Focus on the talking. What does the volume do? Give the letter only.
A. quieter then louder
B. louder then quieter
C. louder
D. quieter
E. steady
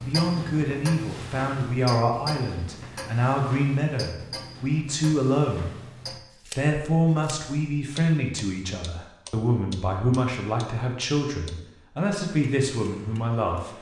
E.